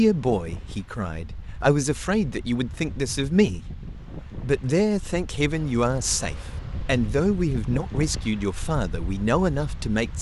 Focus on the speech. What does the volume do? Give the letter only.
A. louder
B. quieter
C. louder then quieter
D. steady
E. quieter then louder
D.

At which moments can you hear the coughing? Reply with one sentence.
The coughing can't be heard in this clip.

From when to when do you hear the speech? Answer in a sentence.
The speech can be heard from 0.0 to 3.6 s and from 4.4 to 10.1 s.